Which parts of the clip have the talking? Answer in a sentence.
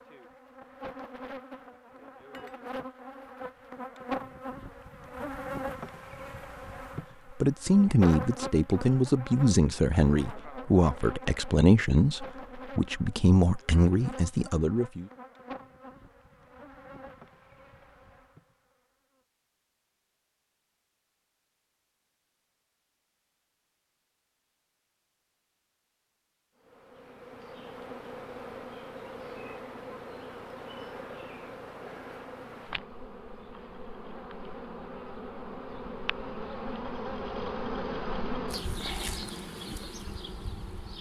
You can hear the talking from 7.4 to 15.1 s.